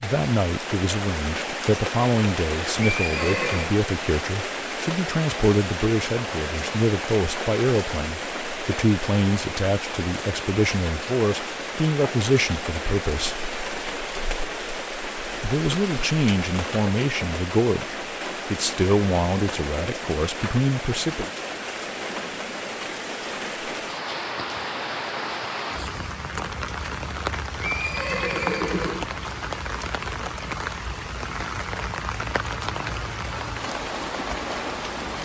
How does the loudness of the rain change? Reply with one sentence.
The loudness of the rain stays about the same.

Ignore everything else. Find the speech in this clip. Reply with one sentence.
The speech can be heard from 0.0 to 13.5 s and from 15.4 to 21.3 s.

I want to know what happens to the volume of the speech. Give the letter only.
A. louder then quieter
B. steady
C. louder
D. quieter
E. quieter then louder
B.